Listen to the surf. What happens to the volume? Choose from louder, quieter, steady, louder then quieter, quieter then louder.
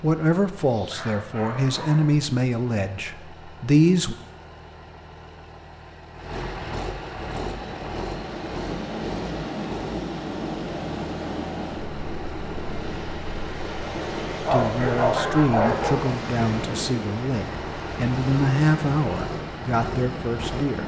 steady.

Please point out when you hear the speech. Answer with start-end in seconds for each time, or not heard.
0.0-4.2, 14.5-20.8.